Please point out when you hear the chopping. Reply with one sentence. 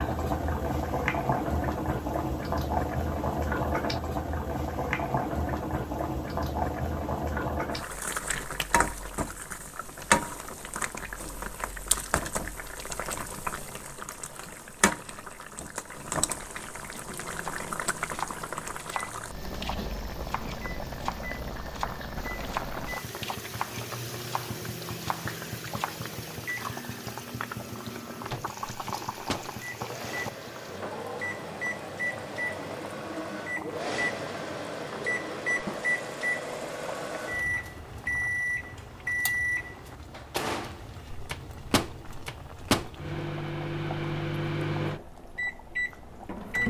The chopping can be heard from 17.4 to 26.0 s.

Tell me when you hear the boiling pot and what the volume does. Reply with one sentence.
You can hear the boiling pot from 0.0 to 46.6 s, getting quieter.